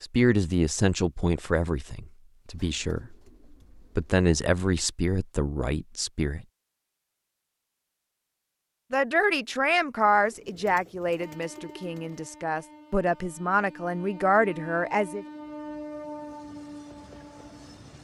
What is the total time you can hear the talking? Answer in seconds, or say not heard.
12 s.